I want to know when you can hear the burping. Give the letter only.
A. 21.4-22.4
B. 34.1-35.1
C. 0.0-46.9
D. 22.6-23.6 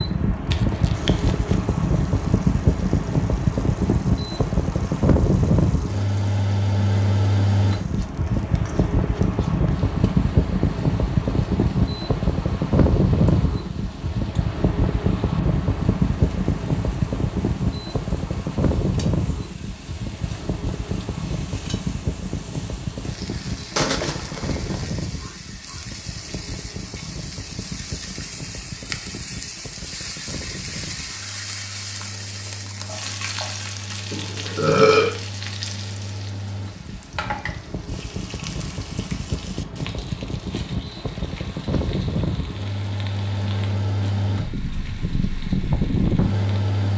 B.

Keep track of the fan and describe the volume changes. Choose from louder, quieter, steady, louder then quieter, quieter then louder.
quieter then louder.